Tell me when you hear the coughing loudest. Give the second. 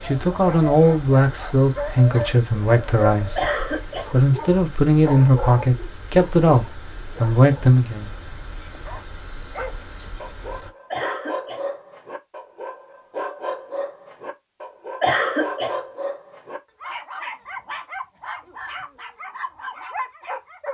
15 s.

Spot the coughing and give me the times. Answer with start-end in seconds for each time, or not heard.
3.4-4.2, 10.9-11.7, 15.0-15.8.